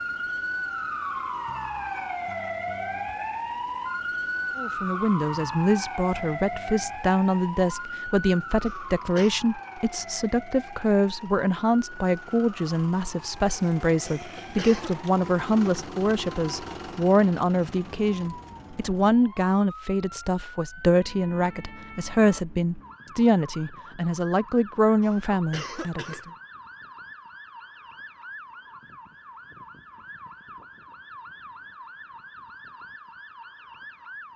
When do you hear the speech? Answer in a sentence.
You can hear the speech from 4.5 to 26.2 s.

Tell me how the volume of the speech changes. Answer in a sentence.
The volume of the speech stays about the same.